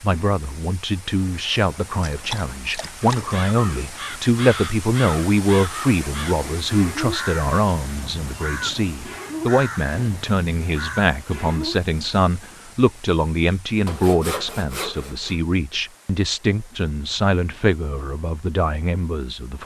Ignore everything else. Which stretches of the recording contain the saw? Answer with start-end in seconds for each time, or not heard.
13.8-15.3.